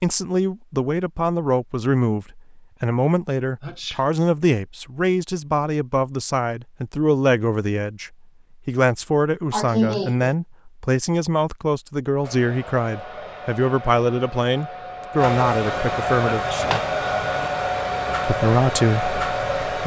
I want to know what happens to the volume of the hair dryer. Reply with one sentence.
The volume of the hair dryer goes up.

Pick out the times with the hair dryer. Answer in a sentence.
The hair dryer can be heard from 12.2 to 19.8 s.